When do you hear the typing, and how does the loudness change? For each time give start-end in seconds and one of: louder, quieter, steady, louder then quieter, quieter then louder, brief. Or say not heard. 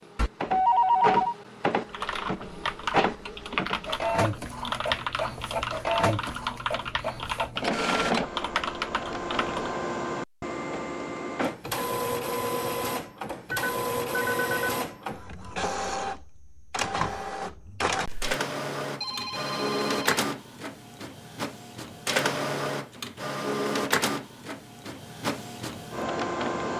1.9-9.8 steady.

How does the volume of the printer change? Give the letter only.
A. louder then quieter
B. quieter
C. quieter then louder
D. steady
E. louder
D.